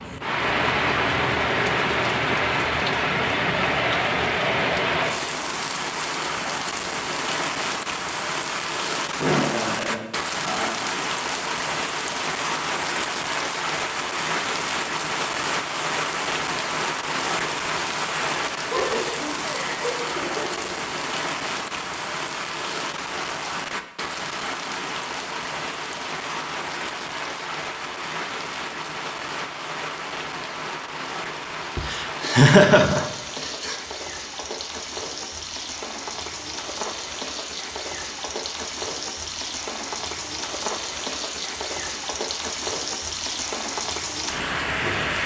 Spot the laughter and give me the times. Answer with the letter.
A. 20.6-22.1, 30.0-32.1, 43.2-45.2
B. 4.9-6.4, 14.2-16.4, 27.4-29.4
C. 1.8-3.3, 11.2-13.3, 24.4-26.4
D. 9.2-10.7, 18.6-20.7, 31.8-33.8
D.